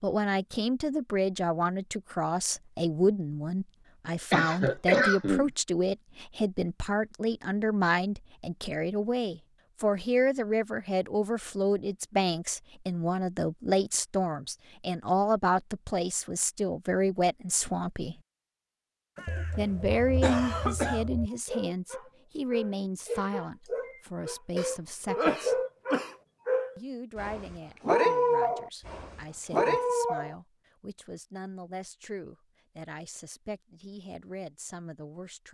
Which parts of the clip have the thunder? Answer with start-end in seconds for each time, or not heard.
not heard.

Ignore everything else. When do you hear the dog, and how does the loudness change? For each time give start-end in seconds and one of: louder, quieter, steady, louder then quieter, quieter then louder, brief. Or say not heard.
21.3-30.4 louder.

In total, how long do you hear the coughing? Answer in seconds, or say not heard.
5 s.